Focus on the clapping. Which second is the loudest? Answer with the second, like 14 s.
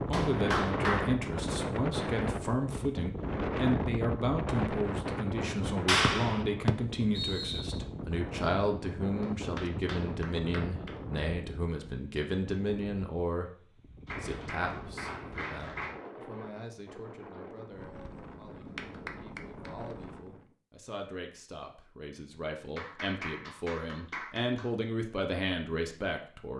6 s.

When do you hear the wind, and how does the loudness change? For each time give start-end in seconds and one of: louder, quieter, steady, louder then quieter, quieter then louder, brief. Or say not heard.
0.0-20.5 quieter.